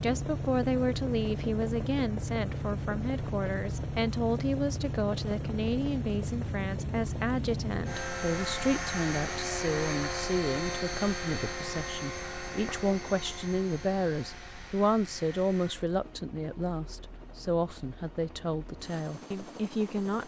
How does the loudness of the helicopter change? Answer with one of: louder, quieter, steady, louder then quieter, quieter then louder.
quieter.